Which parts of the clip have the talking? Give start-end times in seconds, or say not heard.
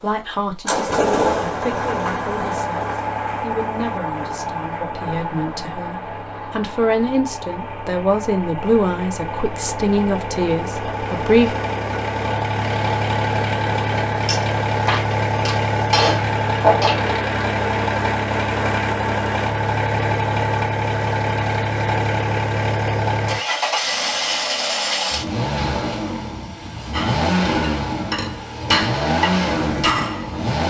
0.0-11.5.